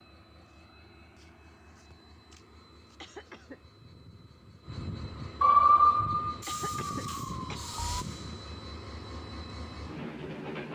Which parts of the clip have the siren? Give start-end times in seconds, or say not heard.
5.4-8.1.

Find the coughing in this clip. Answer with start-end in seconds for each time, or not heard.
3.0-3.6, 6.5-7.7.